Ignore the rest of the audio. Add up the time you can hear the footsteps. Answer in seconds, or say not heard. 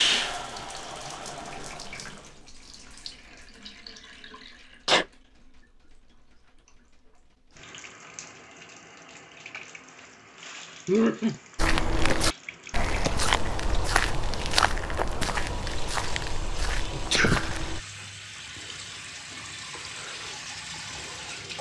6 s.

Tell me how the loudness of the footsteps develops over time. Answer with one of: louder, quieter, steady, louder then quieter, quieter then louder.
quieter.